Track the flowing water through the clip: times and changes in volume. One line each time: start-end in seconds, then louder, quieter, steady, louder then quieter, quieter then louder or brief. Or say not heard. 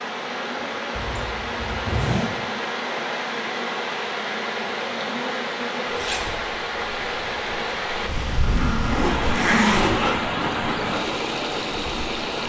0.0-12.4 steady.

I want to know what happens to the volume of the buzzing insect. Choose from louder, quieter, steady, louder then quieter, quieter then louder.
louder.